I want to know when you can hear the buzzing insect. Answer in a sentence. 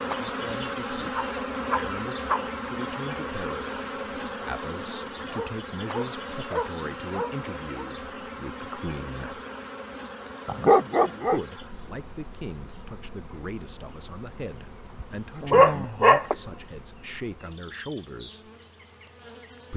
The buzzing insect can be heard from 0.0 to 19.7 s.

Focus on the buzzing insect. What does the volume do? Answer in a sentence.
The volume of the buzzing insect goes down.